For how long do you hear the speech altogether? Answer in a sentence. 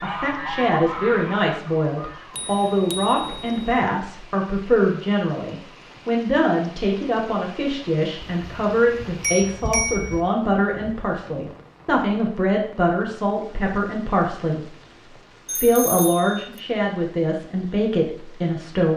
The speech can be heard for 18 seconds in total.